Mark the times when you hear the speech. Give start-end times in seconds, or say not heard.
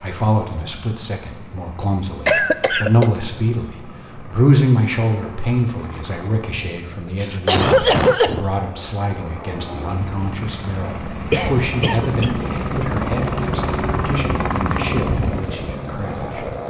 0.0-16.4.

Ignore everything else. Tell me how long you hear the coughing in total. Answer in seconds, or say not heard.
4 s.